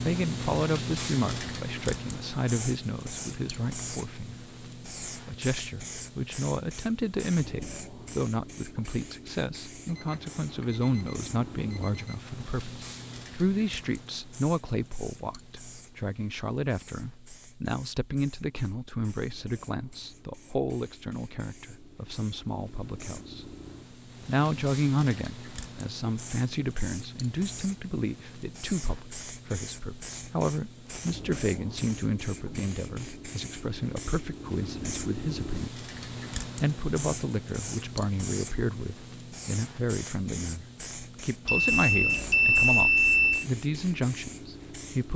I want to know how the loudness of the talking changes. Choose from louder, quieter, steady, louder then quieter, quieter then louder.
steady.